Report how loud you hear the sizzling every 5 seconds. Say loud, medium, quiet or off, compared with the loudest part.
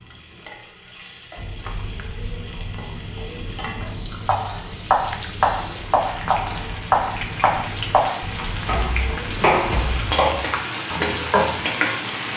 quiet, medium, loud.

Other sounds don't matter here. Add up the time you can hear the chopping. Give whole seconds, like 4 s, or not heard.
8 s.